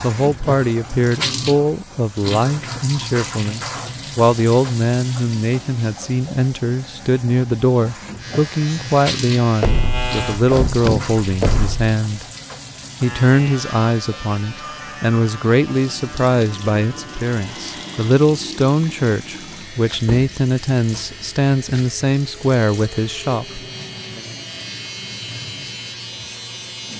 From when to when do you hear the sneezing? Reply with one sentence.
You can't hear the sneezing here.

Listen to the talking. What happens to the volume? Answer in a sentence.
The volume of the talking stays about the same.